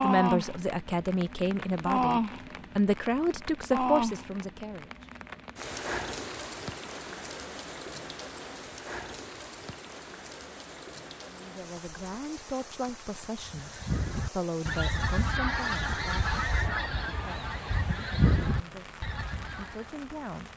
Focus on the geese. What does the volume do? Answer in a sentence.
The volume of the geese stays about the same.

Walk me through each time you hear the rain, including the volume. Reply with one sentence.
You can hear the rain from 0.0 to 20.5 s, getting quieter.